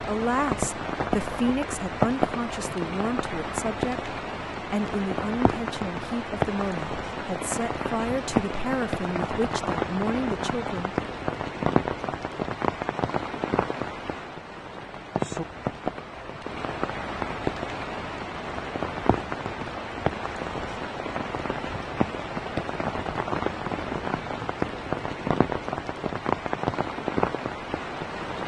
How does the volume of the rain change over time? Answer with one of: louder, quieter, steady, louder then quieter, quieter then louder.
steady.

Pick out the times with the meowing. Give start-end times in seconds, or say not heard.
not heard.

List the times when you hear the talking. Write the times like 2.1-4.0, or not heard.
0.0-10.9.